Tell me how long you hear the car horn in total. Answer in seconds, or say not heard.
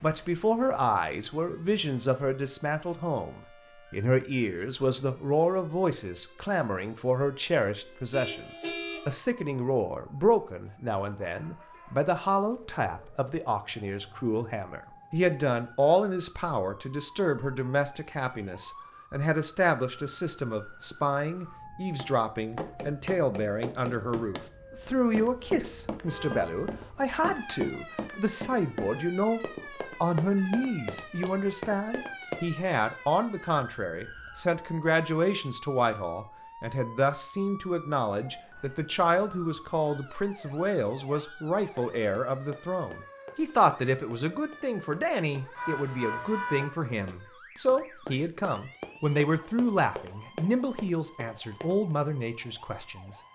3 s.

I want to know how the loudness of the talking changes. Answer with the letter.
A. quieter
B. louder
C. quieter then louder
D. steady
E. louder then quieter
D.